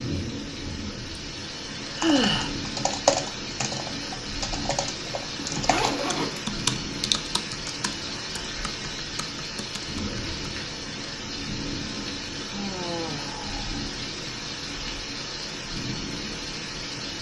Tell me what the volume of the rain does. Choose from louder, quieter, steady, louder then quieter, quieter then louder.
steady.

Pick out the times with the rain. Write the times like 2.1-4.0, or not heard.
0.0-17.1.